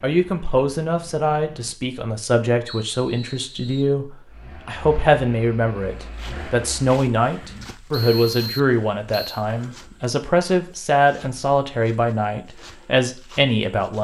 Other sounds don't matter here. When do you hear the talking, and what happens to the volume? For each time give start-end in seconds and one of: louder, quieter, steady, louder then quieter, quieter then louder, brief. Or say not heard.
0.0-13.9 steady.